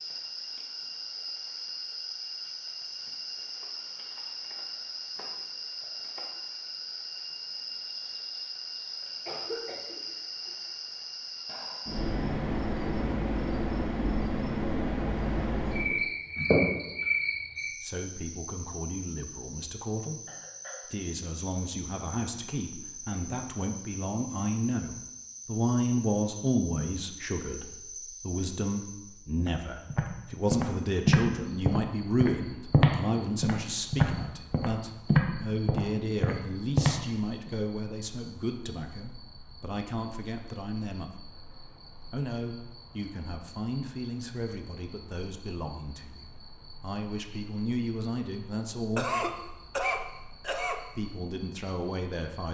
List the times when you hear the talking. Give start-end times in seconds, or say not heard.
17.6-20.2, 20.9-41.2, 42.1-49.1, 51.0-52.4.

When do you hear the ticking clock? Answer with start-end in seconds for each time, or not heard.
not heard.